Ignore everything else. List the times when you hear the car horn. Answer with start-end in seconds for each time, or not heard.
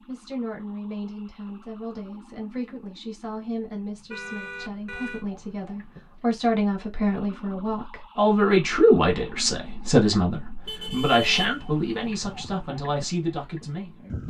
4.1-5.2, 10.7-12.6.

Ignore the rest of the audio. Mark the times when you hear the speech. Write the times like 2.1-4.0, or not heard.
0.1-14.2.